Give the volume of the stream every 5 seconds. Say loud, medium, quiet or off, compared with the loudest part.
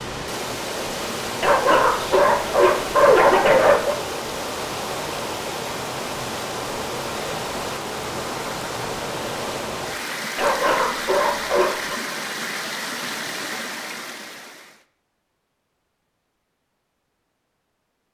loud, loud, loud, off.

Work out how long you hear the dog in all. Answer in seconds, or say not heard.
4 s.